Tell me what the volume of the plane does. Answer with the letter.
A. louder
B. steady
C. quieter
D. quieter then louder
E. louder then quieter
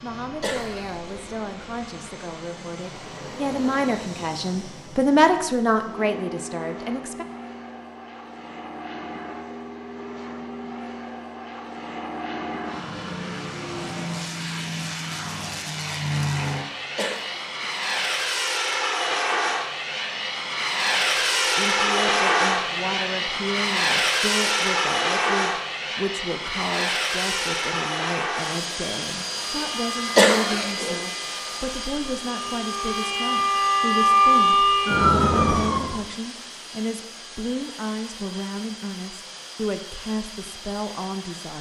E.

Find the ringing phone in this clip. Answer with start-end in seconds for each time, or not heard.
not heard.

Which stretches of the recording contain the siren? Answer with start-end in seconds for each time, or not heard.
29.6-36.0.